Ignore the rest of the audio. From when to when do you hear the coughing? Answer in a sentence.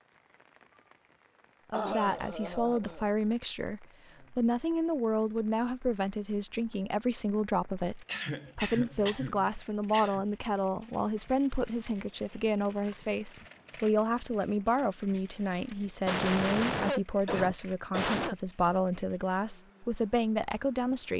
You can hear the coughing from 1.7 to 3.0 s, from 8.1 to 10.2 s and from 16.1 to 18.4 s.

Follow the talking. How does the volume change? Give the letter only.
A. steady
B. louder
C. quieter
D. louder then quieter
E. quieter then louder
A.